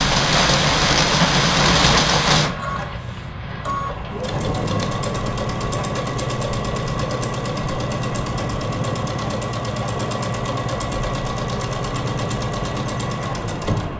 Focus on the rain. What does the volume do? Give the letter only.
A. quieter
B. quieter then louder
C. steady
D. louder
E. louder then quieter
A.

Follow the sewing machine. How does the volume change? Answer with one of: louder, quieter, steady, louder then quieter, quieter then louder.
steady.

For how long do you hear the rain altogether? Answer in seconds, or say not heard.
14 s.